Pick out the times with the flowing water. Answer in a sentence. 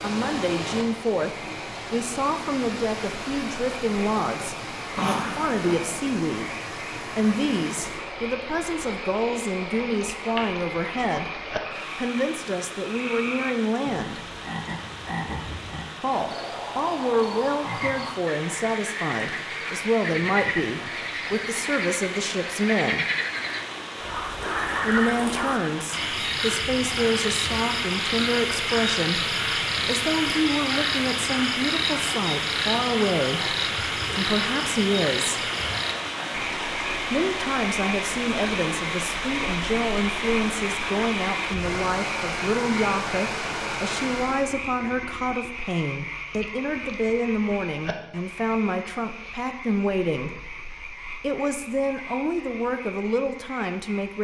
You can hear the flowing water from 0.0 to 44.5 s.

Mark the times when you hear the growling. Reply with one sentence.
You can hear the growling from 5.0 to 5.8 s.